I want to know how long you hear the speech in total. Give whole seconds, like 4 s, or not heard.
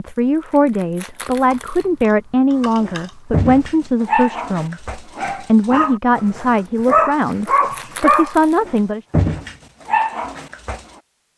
9 s.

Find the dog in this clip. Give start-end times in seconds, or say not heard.
2.8-10.8.